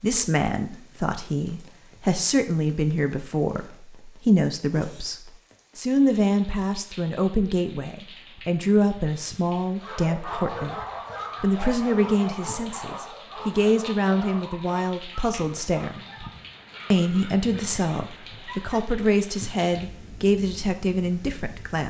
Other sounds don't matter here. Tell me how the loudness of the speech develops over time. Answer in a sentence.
The volume of the speech stays about the same.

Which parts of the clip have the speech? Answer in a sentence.
The speech can be heard from 0.0 to 10.8 s, from 11.4 to 15.9 s and from 16.9 to 21.8 s.